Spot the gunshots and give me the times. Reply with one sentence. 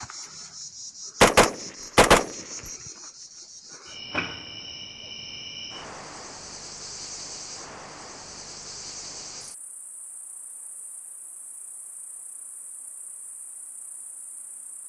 The gunshots can be heard from 1.2 to 2.7 s.